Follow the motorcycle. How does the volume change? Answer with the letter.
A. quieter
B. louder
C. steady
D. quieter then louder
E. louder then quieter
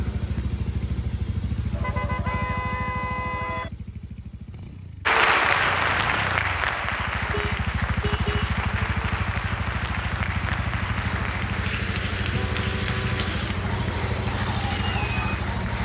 D.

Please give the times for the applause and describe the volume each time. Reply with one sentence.
You can hear the applause from 5.0 to 15.8 s, getting quieter.